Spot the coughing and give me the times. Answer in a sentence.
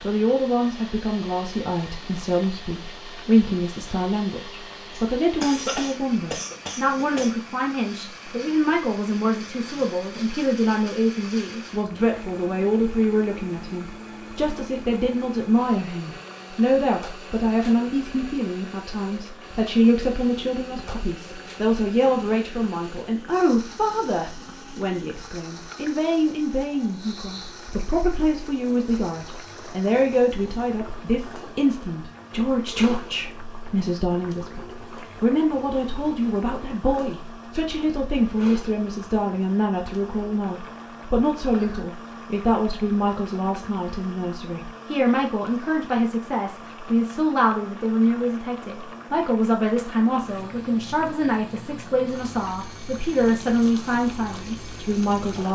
You can hear the coughing from 4.9 to 7.3 s and from 41.4 to 41.9 s.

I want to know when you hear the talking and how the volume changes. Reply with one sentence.
The talking can be heard from 0.0 to 55.5 s, at a steady volume.